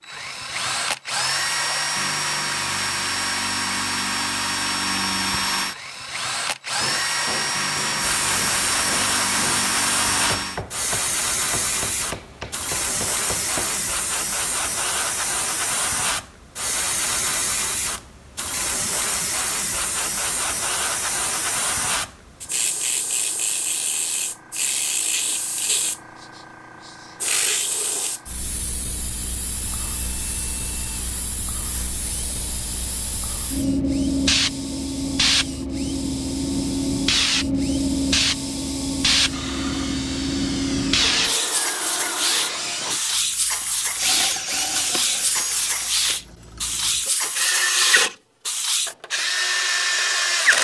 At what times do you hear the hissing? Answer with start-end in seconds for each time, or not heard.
8.0-49.0.